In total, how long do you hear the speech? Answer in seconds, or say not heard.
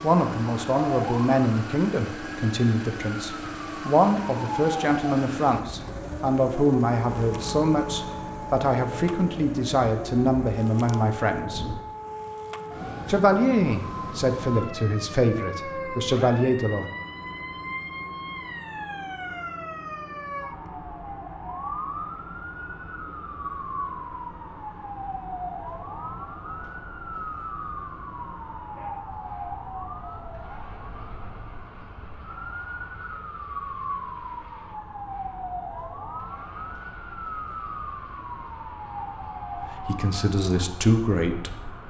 18 s.